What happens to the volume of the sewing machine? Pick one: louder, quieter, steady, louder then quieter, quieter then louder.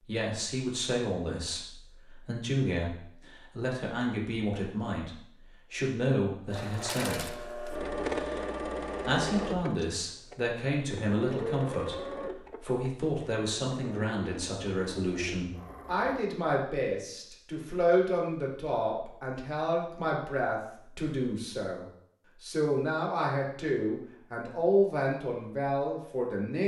quieter.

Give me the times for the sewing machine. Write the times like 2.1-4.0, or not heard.
6.5-16.2.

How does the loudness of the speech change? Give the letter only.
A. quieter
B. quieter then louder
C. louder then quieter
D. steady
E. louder
D.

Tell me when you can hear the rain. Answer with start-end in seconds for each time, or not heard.
not heard.